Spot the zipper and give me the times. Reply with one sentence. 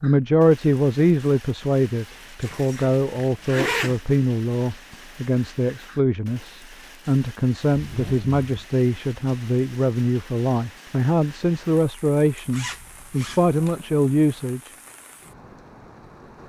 You can hear the zipper from 2.4 to 4.0 s, from 7.7 to 8.4 s and from 12.5 to 13.8 s.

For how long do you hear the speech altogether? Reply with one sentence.
You can hear the speech for 15 seconds altogether.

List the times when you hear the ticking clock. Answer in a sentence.
You can't hear the ticking clock here.